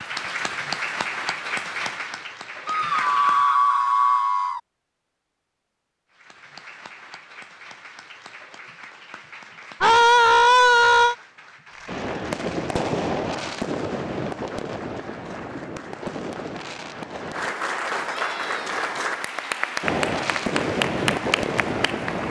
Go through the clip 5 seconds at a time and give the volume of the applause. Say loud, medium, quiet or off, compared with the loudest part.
loud, quiet, quiet, loud, loud.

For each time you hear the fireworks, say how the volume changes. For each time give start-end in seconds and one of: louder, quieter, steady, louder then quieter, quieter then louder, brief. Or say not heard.
11.8-17.6 quieter
19.8-22.2 brief.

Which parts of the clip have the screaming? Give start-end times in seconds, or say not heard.
2.6-4.6, 9.8-11.2, 18.1-18.8.